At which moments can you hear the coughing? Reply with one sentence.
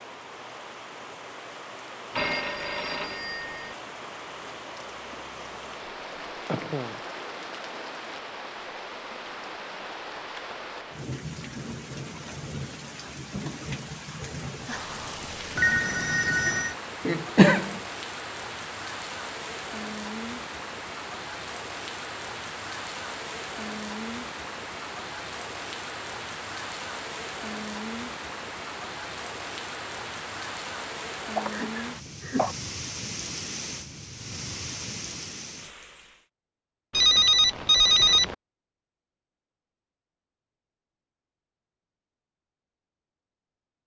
You can hear the coughing from 6.5 to 7.0 s, from 17.1 to 17.8 s and from 31.4 to 32.5 s.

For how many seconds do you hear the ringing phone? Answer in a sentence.
You can hear the ringing phone for 4 seconds altogether.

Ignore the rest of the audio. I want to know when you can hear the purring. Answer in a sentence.
You can't hear the purring here.